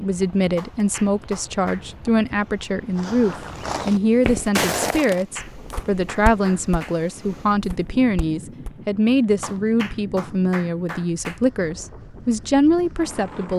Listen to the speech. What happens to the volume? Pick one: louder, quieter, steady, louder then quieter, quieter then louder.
steady.